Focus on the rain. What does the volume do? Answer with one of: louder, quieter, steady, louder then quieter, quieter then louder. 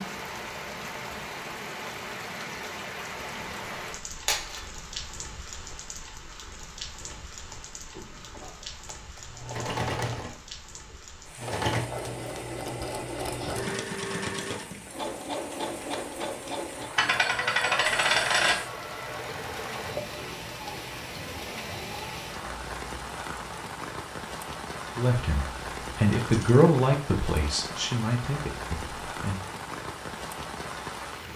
quieter then louder.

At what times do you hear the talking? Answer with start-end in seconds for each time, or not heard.
24.9-29.4.